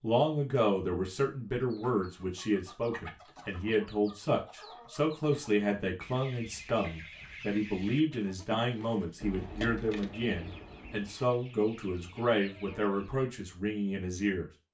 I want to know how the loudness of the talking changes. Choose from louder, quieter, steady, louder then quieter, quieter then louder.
steady.